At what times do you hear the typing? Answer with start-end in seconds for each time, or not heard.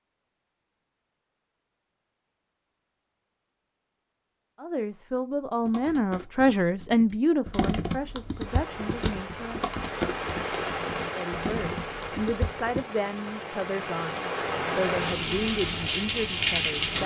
5.6-12.8.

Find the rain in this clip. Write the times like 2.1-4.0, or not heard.
8.4-17.0.